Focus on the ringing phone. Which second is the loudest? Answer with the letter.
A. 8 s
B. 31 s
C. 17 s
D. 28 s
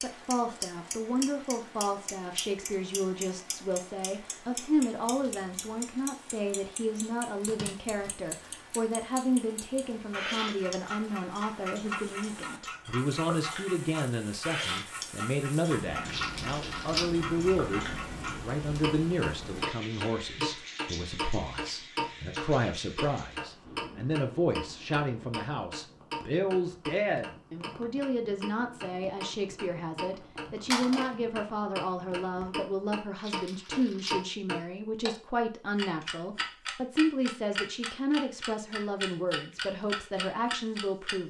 B.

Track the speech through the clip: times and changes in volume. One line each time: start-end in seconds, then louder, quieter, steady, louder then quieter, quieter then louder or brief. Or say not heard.
0.0-41.2 steady.